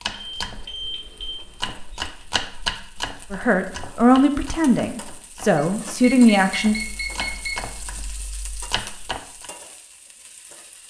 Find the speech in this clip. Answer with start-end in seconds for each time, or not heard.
3.3-6.8.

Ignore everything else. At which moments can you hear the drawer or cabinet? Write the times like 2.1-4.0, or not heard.
not heard.